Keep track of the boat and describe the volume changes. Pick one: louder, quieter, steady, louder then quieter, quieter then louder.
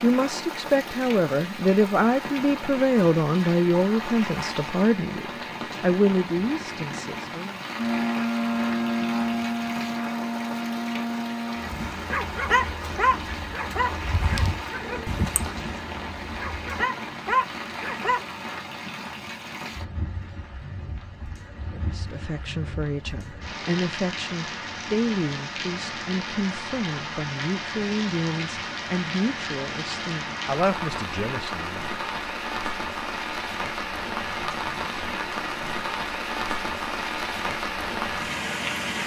quieter.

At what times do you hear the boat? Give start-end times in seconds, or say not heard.
7.8-16.9.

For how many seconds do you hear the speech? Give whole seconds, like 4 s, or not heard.
18 s.